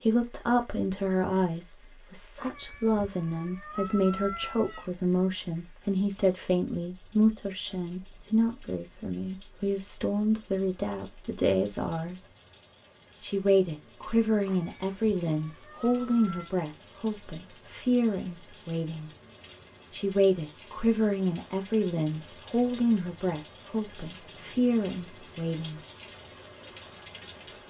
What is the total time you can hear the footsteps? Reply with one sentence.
You can't hear the footsteps here.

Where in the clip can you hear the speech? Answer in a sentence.
The speech can be heard from 0.0 to 12.2 s, from 13.2 to 19.1 s and from 19.9 to 25.8 s.